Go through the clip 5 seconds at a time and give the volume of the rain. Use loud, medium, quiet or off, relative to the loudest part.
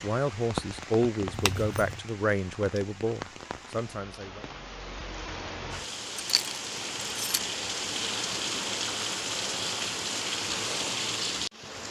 medium, loud, loud.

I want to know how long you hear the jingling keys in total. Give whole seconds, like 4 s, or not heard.
2 s.